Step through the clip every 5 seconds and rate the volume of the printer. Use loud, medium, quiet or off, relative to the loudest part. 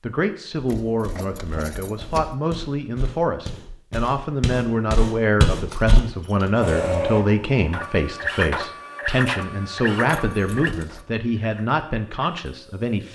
off, loud, medium.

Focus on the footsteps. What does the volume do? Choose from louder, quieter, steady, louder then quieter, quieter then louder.
louder.